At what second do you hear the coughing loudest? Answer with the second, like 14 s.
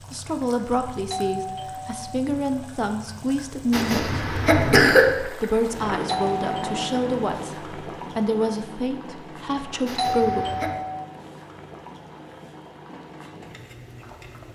5 s.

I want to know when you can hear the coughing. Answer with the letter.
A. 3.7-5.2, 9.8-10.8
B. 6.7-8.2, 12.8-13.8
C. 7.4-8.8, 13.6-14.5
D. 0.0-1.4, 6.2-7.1
A.